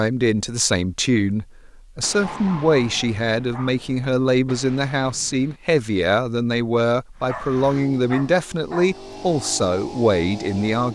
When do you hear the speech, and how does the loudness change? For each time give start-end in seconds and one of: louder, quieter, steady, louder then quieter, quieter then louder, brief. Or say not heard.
0.0-10.9 steady.